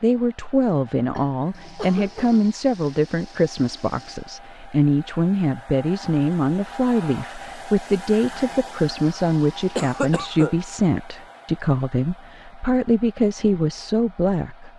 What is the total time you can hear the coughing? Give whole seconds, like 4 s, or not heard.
2 s.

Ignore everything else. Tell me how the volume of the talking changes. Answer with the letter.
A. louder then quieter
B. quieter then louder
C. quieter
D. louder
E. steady
E.